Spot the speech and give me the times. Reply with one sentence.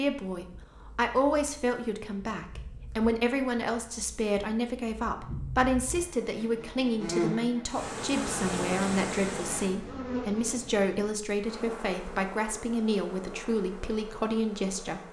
You can hear the speech from 0.0 to 15.0 s.